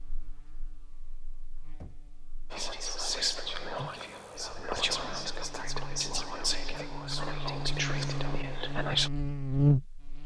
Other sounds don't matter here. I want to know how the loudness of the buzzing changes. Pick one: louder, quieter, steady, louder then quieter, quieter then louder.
louder.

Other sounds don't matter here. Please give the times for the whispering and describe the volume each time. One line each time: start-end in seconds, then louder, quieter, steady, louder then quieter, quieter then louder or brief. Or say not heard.
2.5-9.1 steady.